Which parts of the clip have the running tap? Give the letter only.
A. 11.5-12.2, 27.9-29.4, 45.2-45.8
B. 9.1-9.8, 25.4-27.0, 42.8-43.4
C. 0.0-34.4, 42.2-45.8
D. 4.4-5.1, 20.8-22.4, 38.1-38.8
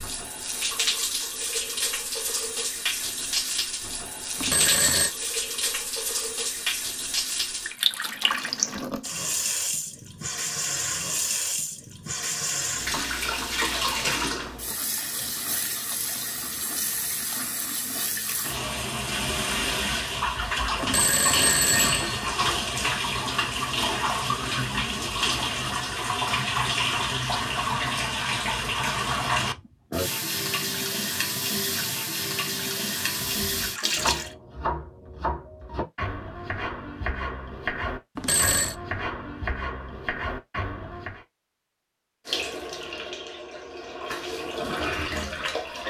C.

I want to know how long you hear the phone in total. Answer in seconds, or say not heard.
3 s.